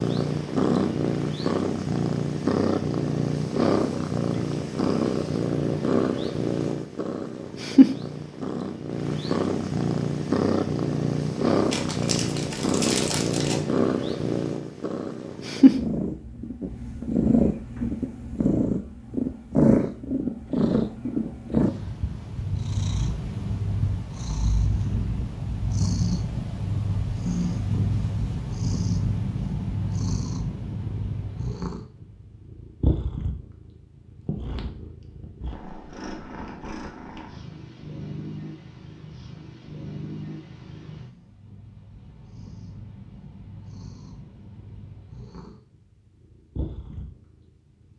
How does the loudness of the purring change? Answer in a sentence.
The loudness of the purring goes down.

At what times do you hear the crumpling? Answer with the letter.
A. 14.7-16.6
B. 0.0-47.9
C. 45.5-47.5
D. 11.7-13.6
D.